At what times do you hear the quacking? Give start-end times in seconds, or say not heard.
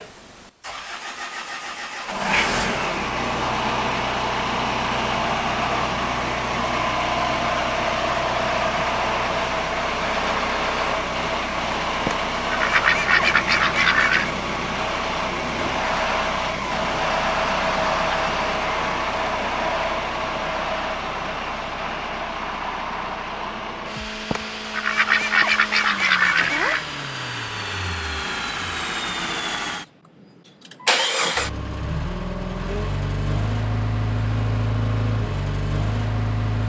12.1-14.3, 24.3-26.9.